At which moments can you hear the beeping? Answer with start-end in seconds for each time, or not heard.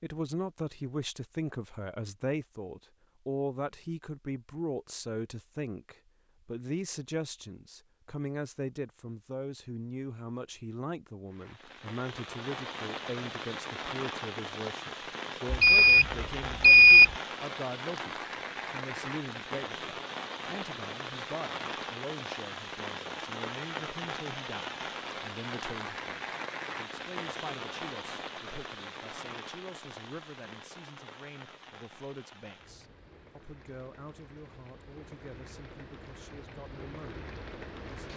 15.5-17.1.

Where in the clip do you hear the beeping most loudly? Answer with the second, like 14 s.
17 s.